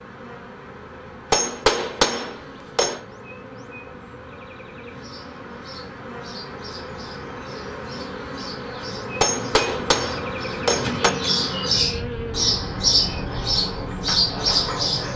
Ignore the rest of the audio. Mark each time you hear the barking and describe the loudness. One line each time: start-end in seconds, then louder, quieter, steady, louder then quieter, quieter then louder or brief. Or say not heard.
not heard.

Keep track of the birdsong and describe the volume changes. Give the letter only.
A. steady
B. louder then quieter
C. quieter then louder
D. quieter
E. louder
E.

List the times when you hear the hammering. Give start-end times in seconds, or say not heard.
1.3-3.0, 9.2-11.1.